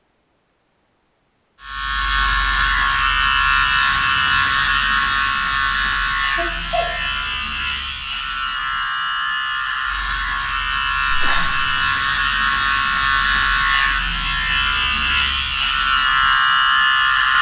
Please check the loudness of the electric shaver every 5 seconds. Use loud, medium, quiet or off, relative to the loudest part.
loud, medium, loud, loud.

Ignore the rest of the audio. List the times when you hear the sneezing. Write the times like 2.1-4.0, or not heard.
6.3-6.8, 11.1-11.7.